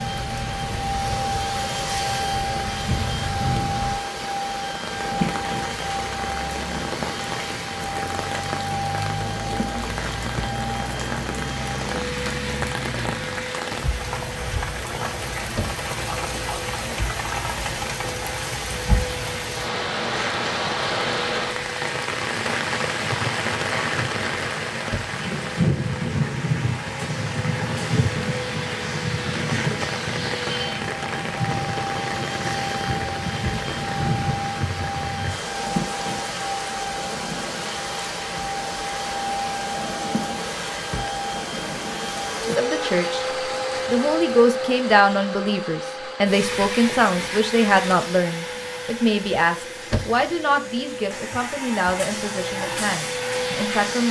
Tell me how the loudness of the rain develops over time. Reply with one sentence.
The volume of the rain goes up, then down.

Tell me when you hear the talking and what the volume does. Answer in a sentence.
The talking can be heard briefly from 42.5 to 43.2 s; and from 43.9 to 54.0 s, getting quieter.